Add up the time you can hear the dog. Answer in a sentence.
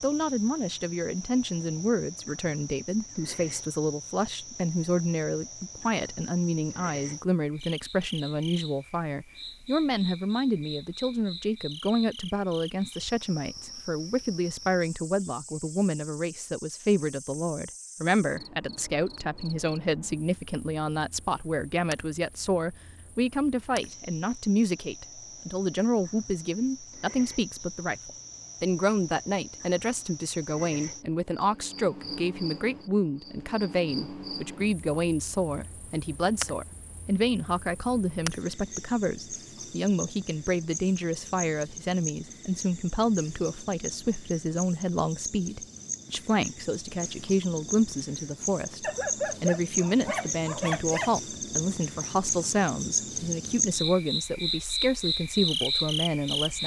You can hear the dog for 2 seconds altogether.